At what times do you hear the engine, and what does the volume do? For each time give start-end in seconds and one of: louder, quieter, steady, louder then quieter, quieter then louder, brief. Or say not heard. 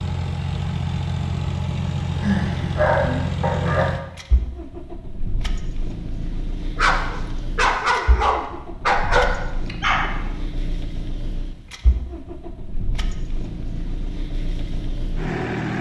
0.0-15.7 quieter.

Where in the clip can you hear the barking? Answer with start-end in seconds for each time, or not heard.
2.2-3.9, 6.8-10.3.